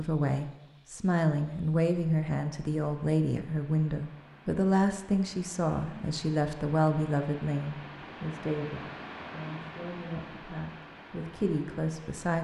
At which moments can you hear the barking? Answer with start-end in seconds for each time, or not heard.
not heard.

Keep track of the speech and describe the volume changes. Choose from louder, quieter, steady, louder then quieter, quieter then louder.
quieter.